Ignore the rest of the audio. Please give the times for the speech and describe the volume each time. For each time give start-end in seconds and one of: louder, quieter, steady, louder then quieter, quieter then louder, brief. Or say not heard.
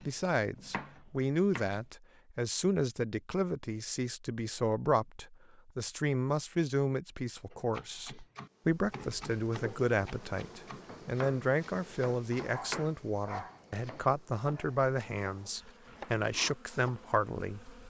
0.0-17.7 steady.